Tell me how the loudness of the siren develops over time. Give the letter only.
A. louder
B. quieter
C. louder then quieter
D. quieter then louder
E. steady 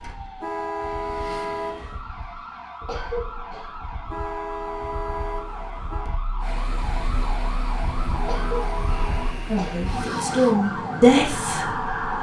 A.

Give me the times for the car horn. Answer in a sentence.
You can hear the car horn from 0.4 to 2.0 s, from 4.0 to 6.1 s and from 8.2 to 9.3 s.